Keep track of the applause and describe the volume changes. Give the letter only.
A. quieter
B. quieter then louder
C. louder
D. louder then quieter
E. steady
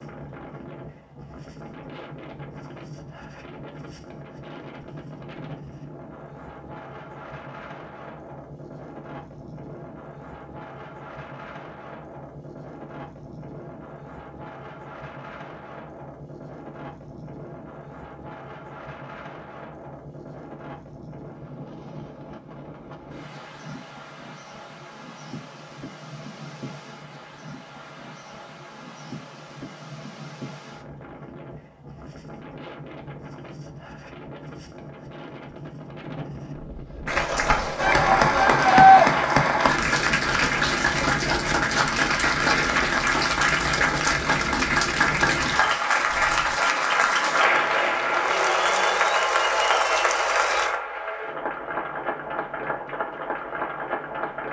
A.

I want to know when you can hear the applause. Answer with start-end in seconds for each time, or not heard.
37.0-54.4.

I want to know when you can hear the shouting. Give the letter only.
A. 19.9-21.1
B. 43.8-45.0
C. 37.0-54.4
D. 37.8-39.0
D.